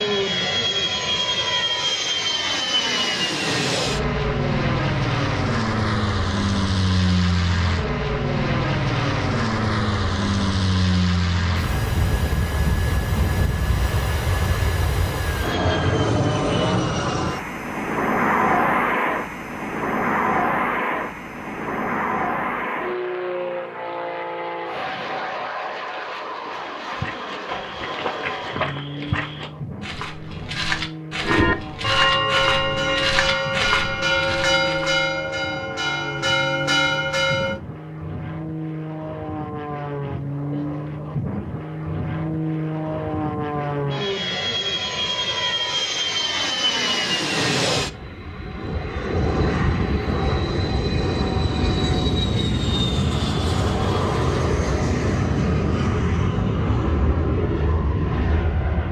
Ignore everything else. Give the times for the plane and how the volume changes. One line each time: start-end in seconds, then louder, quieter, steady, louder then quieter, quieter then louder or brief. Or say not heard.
0.0-58.8 quieter then louder.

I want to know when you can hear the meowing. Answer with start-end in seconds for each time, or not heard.
not heard.